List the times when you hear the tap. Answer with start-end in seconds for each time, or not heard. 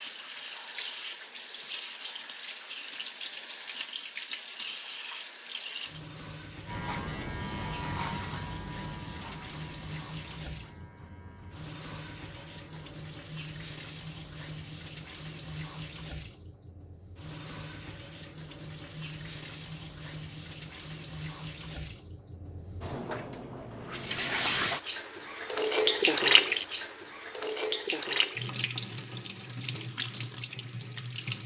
0.0-31.4.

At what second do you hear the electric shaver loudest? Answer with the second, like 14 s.
8 s.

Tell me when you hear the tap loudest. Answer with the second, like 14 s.
26 s.